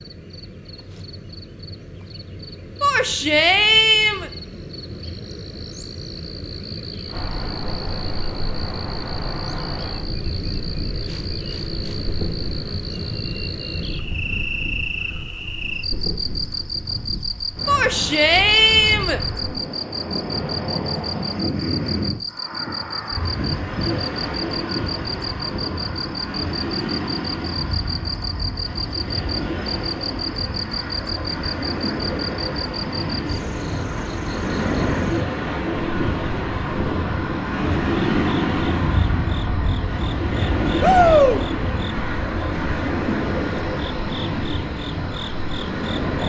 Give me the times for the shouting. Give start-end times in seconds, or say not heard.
2.8-4.3, 17.6-19.2, 40.8-41.4.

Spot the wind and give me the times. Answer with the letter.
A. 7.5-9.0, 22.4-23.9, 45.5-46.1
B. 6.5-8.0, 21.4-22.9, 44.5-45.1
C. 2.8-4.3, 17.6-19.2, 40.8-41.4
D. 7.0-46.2
D.